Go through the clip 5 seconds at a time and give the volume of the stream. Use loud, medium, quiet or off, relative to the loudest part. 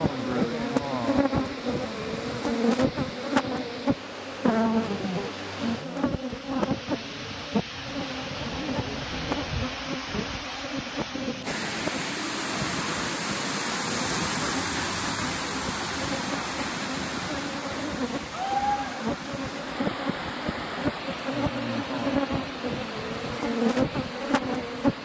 medium, medium, loud, loud, medium.